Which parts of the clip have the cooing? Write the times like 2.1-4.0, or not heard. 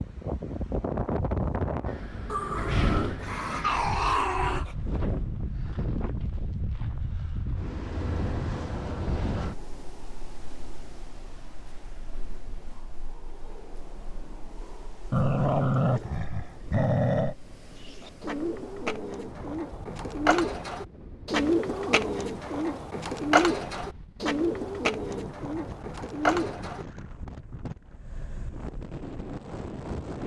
17.8-26.9.